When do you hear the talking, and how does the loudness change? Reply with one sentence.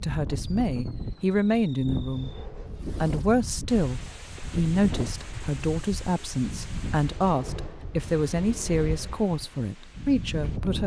You can hear the talking briefly from 0.0 to 2.3 s; and from 3.0 to 10.8 s, at a steady volume.